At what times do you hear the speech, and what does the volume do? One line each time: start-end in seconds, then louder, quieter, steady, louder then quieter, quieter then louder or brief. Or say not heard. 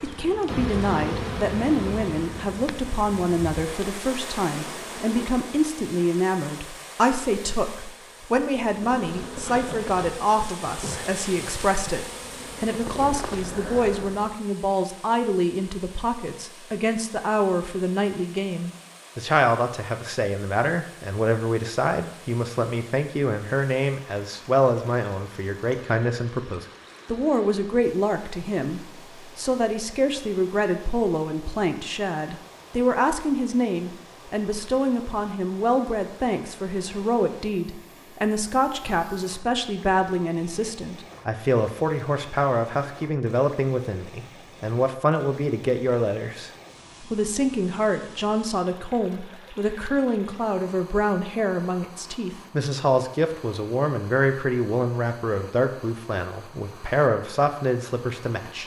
0.0-58.6 steady.